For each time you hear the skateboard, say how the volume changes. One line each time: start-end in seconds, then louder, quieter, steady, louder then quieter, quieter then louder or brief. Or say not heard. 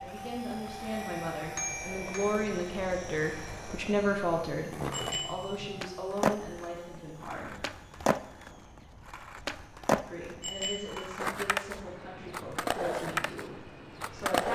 0.0-14.4 louder.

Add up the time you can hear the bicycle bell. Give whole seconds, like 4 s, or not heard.
2 s.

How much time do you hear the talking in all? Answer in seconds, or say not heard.
12 s.